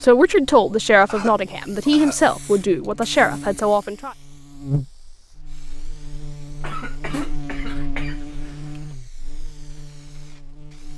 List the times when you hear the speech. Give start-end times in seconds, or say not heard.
0.0-4.2.